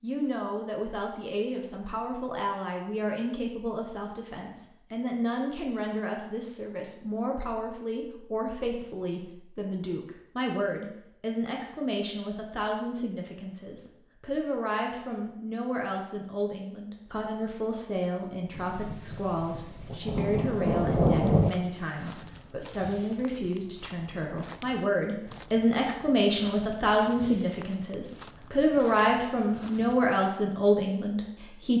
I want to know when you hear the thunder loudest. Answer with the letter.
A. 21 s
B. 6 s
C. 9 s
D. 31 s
A.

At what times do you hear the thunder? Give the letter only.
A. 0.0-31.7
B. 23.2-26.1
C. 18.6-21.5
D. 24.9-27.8
C.